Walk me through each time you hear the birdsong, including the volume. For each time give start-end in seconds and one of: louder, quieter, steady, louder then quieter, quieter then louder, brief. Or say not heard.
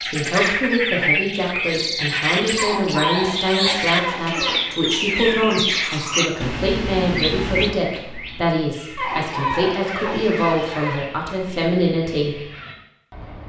0.0-13.4 quieter.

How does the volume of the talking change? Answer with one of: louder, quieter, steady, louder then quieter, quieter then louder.
steady.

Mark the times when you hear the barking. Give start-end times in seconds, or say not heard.
2.5-4.6, 8.9-11.0.